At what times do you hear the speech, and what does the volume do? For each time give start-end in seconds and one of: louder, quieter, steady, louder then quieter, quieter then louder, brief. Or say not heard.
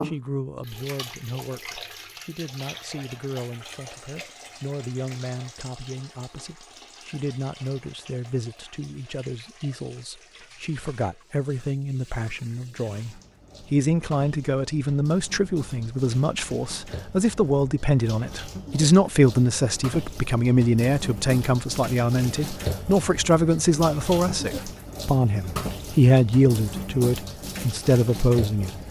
0.0-28.7 louder.